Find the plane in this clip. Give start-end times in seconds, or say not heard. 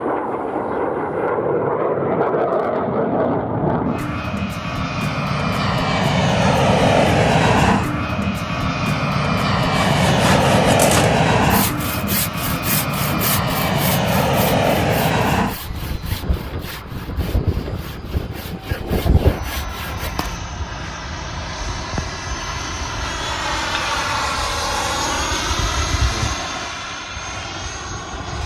0.0-28.4.